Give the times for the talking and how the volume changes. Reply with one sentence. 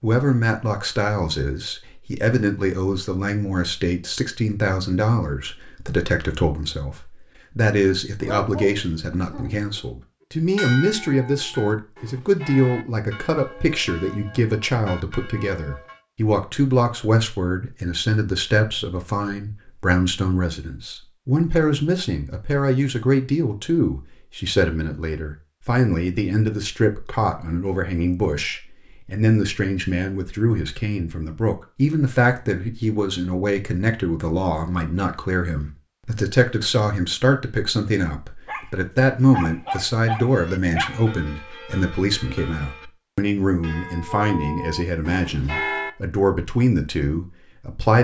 You can hear the talking from 0.0 to 47.9 s, at a steady volume.